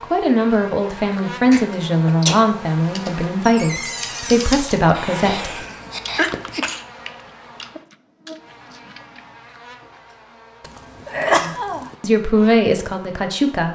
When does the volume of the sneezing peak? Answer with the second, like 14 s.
11 s.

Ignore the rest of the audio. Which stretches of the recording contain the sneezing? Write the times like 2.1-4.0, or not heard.
1.5-2.5, 4.9-6.8, 10.6-11.9.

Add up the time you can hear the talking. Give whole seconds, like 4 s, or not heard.
8 s.